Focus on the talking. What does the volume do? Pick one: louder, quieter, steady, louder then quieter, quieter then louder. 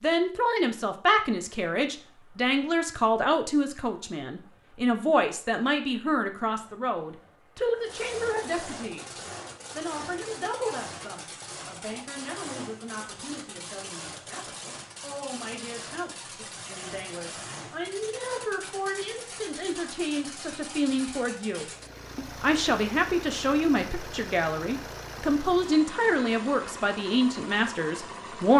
quieter then louder.